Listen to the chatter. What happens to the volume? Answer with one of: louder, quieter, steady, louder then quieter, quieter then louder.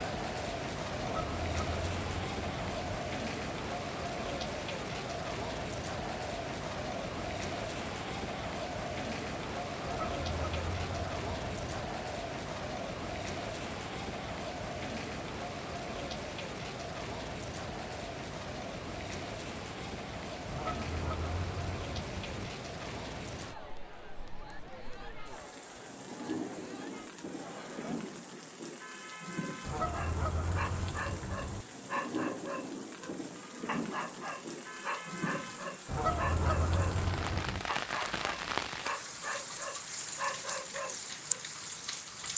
quieter.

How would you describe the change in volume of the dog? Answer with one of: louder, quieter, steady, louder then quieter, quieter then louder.
steady.